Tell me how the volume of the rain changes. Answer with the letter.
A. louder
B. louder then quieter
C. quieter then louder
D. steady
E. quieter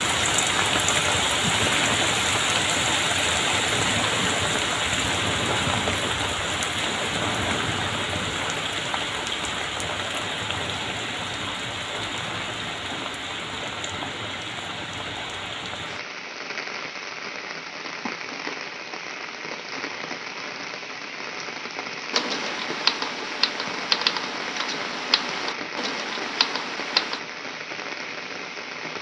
E.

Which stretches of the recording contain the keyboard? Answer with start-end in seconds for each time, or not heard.
22.1-27.2.